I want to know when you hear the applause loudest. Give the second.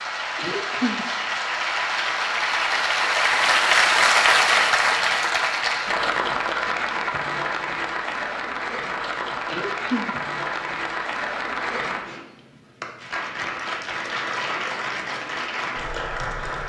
4 s.